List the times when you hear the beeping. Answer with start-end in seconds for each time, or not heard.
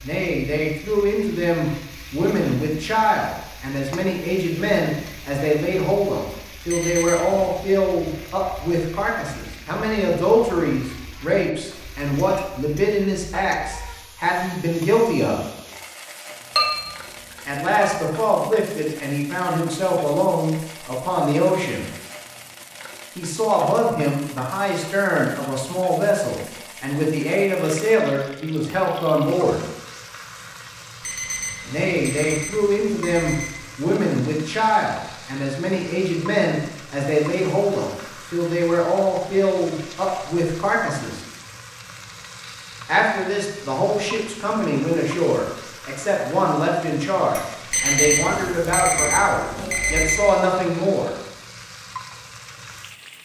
6.7-7.6, 31.0-33.6, 47.7-50.2.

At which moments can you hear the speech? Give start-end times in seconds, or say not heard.
0.0-15.4, 17.4-21.9, 23.1-29.6, 31.6-41.2, 42.9-51.1.